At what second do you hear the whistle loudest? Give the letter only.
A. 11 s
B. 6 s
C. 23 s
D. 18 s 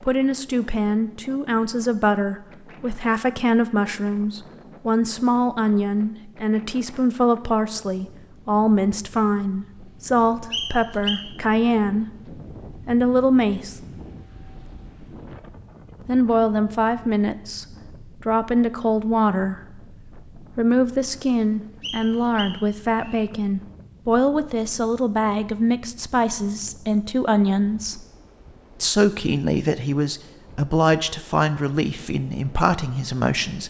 A.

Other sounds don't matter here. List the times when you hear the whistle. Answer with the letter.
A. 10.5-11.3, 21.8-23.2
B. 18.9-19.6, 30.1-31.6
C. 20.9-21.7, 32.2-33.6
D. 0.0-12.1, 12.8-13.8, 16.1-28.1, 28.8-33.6
A.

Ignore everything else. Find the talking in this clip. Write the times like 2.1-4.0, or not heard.
0.0-12.1, 12.8-13.8, 16.1-28.1, 28.8-33.6.